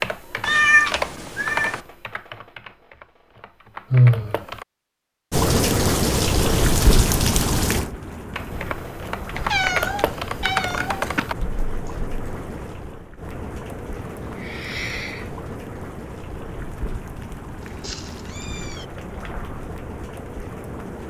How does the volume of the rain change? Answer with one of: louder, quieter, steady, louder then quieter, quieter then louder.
quieter.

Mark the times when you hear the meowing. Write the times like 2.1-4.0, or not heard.
0.4-1.8, 9.3-11.2, 17.6-18.9.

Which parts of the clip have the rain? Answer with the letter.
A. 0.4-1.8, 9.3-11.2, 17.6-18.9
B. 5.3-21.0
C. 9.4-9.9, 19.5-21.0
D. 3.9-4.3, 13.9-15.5
B.